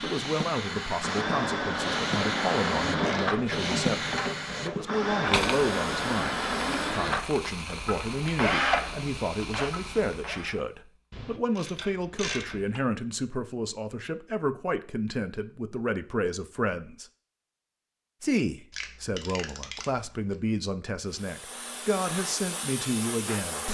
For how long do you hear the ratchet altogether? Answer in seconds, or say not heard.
5 s.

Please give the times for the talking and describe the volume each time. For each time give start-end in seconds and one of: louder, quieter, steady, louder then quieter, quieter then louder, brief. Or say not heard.
0.0-17.1 steady
18.2-23.6 steady.